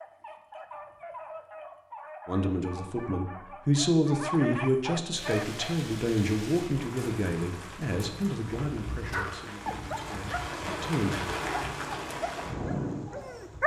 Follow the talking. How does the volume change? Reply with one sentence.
The loudness of the talking goes down.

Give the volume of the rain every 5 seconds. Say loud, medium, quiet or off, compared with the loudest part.
off, medium, loud.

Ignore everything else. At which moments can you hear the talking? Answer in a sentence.
The talking can be heard from 2.2 to 11.2 s.